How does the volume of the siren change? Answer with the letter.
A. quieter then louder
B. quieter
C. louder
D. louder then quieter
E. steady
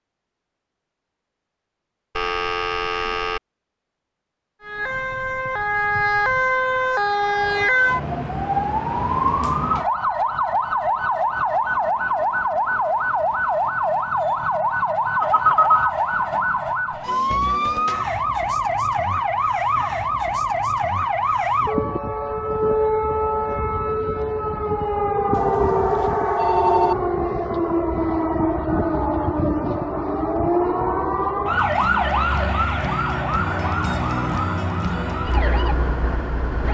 E.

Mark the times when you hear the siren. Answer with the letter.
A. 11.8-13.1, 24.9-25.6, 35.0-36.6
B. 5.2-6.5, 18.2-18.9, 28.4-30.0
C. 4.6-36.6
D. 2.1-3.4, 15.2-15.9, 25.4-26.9
C.